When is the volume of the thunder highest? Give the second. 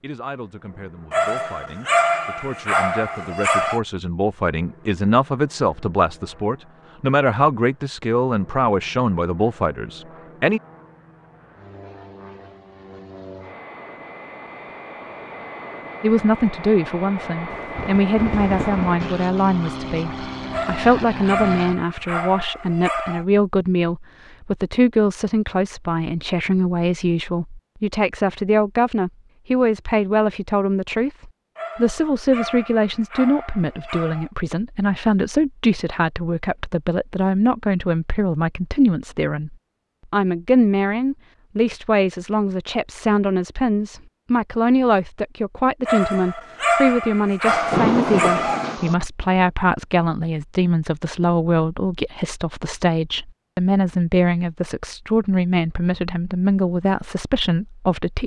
48 s.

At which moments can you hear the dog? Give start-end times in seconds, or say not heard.
1.1-3.8, 20.5-23.2, 31.6-34.3, 45.9-48.8.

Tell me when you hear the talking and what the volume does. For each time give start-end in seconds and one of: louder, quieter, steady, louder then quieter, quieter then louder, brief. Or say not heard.
0.0-10.6 louder
16.0-58.2 steady.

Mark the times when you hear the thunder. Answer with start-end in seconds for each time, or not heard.
17.5-19.0, 47.5-49.0.